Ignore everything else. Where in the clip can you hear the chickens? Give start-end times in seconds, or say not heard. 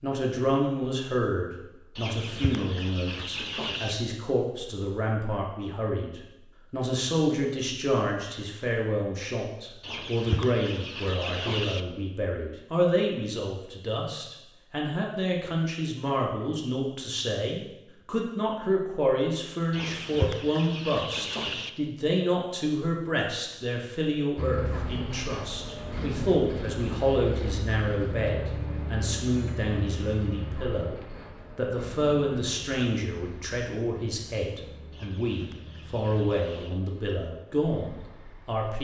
1.9-4.0, 9.8-11.8, 19.7-21.7, 34.9-36.8.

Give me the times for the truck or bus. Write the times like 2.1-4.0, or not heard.
24.4-38.6.